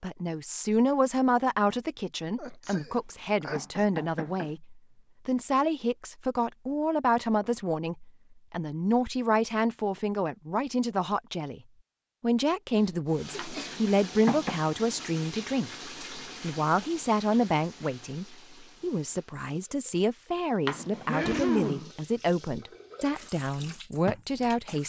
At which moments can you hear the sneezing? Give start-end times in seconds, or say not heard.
2.4-3.9, 12.8-13.8, 21.1-21.9.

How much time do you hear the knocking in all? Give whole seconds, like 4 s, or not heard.
4 s.